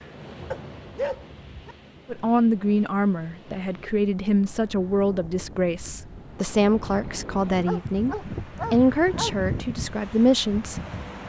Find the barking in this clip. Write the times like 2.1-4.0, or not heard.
0.5-1.8, 7.5-9.3.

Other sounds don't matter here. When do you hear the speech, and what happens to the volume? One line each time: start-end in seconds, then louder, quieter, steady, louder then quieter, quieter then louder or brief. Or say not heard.
2.1-10.8 steady.